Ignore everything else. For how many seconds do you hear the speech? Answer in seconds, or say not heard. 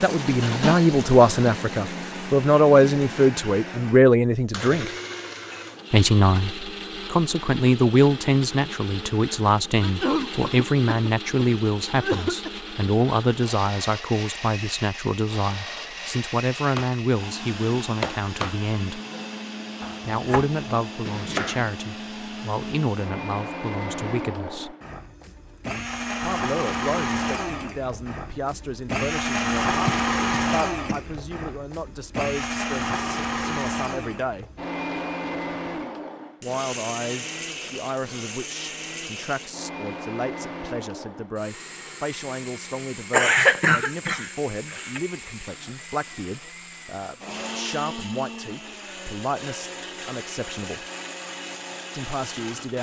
46 s.